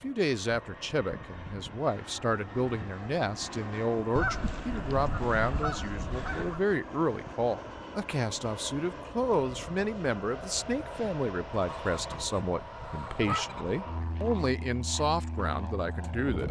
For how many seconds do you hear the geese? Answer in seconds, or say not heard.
5 s.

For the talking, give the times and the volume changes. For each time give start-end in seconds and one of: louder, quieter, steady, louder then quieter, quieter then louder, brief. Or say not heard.
0.0-16.4 steady.